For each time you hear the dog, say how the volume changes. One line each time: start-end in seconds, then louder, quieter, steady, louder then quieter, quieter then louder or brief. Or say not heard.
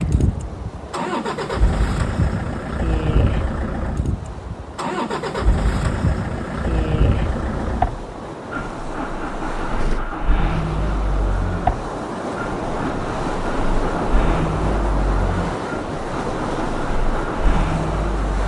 not heard.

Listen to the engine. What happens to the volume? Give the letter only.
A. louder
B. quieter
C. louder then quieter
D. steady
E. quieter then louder
D.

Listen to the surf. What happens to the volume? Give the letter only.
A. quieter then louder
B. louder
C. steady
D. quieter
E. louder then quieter
B.